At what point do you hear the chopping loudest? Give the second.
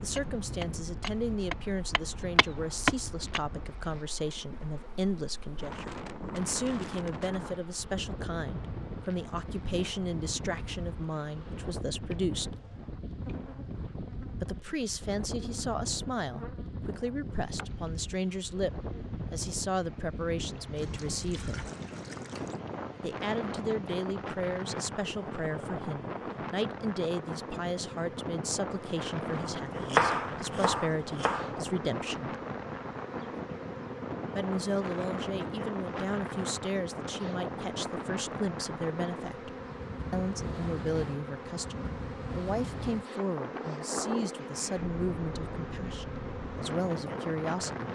30 s.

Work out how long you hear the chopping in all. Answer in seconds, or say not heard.
6 s.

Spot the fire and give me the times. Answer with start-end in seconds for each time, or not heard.
not heard.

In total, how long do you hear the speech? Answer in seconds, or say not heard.
43 s.